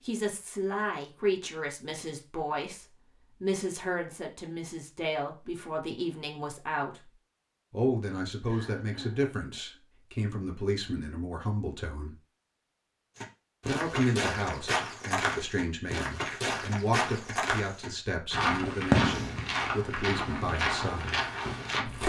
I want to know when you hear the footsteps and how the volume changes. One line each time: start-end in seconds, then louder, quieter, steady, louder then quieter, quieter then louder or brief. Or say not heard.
13.2-22.0 steady.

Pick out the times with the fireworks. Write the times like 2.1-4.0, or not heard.
18.3-22.0.